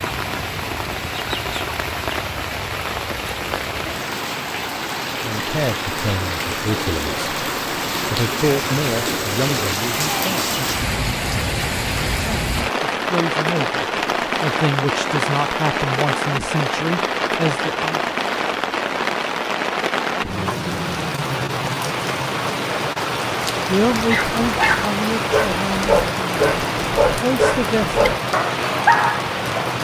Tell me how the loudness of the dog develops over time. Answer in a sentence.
The volume of the dog stays about the same.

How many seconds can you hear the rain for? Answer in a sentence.
The rain can be heard for 30 seconds in total.